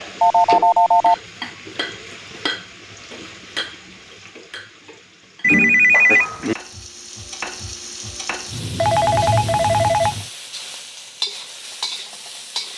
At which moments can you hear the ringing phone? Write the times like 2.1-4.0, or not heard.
0.2-1.1, 5.4-6.5, 8.5-10.2.